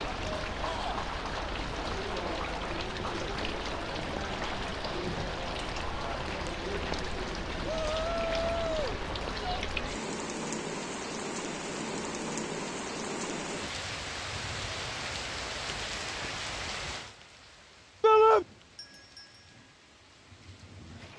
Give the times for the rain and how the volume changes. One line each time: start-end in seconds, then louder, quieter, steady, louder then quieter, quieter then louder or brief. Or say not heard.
0.0-21.1 quieter.